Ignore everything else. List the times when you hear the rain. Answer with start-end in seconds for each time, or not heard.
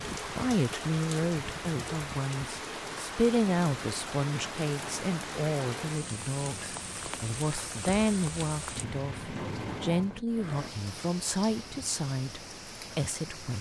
0.0-13.5.